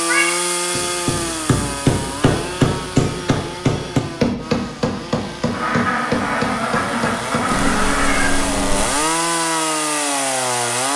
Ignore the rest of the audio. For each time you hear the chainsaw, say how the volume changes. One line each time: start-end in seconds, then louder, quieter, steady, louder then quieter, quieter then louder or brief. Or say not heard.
0.0-10.9 quieter then louder.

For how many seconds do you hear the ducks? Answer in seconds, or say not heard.
3 s.